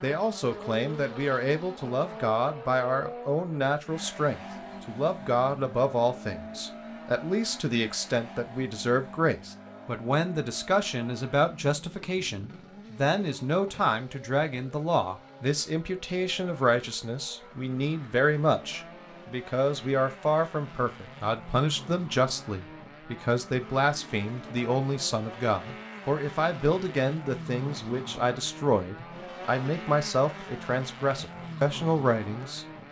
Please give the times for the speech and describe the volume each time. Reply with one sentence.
You can hear the speech from 0.0 to 32.6 s, at a steady volume.